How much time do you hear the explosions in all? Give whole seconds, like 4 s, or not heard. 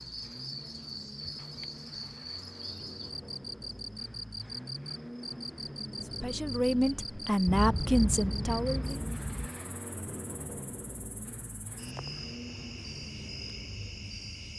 2 s.